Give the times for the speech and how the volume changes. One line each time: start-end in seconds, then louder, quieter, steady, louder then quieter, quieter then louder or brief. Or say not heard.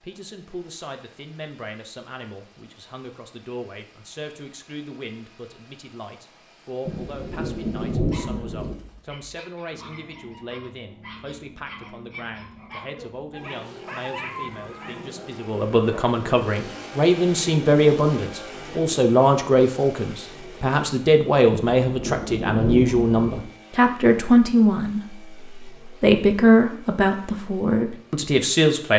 0.0-28.9 louder.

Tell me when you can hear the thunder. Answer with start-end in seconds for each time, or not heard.
6.8-8.8, 21.5-23.4.